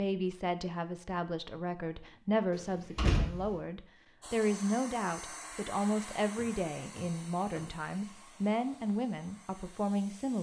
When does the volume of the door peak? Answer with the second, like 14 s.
3 s.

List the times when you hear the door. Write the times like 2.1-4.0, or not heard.
2.5-3.5, 6.3-7.7.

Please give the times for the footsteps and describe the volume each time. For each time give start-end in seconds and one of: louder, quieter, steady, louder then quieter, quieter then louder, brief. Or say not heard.
not heard.